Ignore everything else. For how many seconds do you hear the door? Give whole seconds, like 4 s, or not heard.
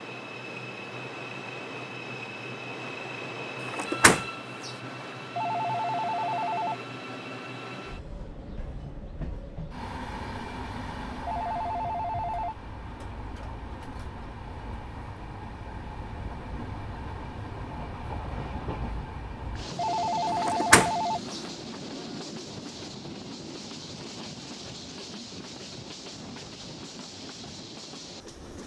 2 s.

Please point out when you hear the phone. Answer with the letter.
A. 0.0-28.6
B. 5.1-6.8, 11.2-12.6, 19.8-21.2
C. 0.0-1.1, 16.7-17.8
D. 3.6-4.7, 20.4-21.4
B.